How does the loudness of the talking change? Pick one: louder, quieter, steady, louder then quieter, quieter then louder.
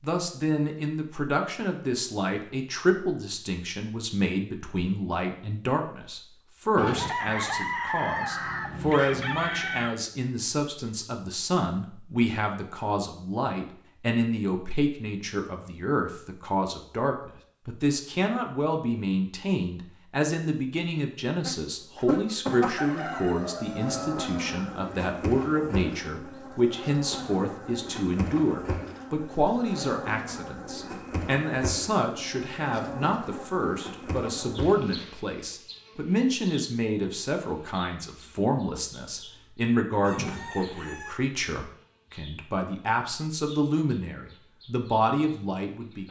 steady.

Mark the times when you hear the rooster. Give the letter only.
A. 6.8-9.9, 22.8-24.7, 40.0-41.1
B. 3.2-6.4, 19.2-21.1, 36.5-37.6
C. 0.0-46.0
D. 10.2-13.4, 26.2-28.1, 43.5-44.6
A.